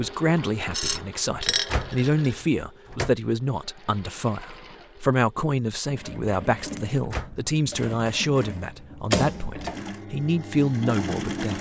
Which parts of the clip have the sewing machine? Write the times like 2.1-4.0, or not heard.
0.0-11.5.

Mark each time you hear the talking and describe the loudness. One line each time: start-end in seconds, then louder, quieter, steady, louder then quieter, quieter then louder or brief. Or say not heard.
0.0-11.5 steady.